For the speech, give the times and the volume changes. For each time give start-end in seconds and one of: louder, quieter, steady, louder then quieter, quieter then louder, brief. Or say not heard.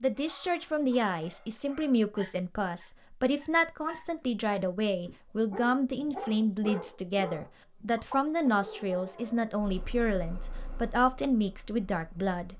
0.0-12.5 steady.